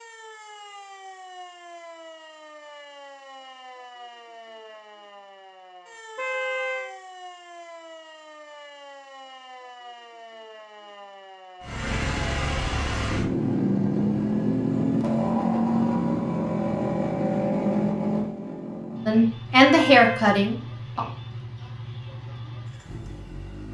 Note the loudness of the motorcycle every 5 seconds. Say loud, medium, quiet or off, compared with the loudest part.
off, off, loud, loud, quiet.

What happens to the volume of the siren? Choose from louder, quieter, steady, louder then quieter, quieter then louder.
steady.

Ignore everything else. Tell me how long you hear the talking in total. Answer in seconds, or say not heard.
2 s.